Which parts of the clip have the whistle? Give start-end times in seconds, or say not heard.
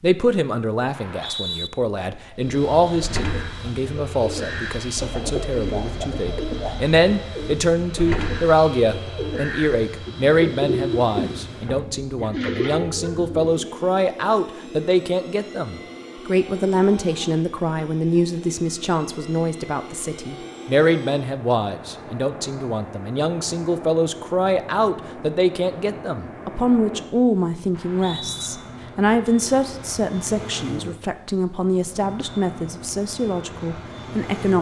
0.9-1.7, 27.7-28.5.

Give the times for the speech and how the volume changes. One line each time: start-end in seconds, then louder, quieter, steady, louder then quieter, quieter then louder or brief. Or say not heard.
0.0-34.5 steady.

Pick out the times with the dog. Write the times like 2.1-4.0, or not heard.
not heard.